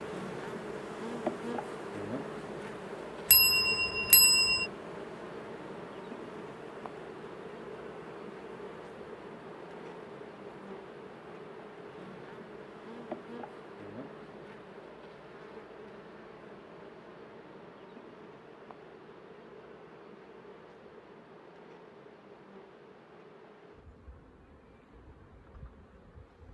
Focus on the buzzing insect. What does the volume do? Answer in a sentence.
The loudness of the buzzing insect goes down.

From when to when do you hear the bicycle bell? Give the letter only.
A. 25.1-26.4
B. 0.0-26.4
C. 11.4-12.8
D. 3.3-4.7
D.